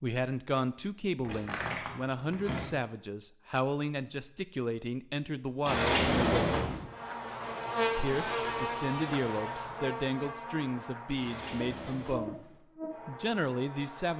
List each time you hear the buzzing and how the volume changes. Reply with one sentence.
The buzzing can be heard from 6.8 to 14.1 s, getting quieter.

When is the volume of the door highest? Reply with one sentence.
The volume of the door peaks at 6 seconds.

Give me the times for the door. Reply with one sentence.
You can hear the door from 1.2 to 2.7 s, from 5.7 to 6.8 s and from 11.2 to 12.4 s.